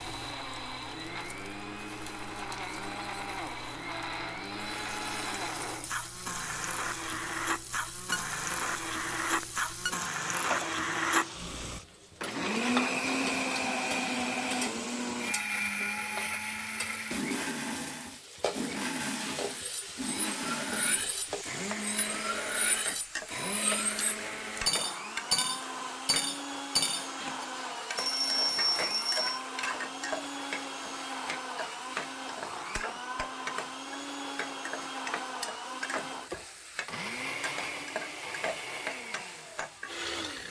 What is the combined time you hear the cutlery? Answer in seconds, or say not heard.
8 s.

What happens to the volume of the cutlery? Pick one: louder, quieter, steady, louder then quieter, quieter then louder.
louder.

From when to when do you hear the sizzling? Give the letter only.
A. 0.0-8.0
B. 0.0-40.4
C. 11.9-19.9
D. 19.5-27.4
B.